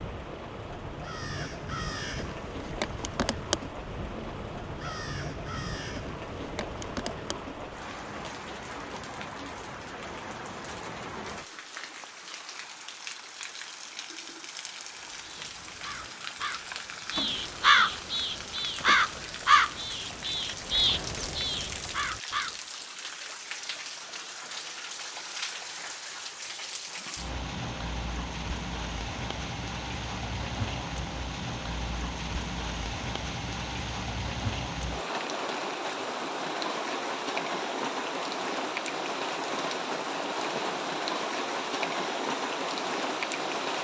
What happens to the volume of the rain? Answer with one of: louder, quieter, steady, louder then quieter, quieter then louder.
louder.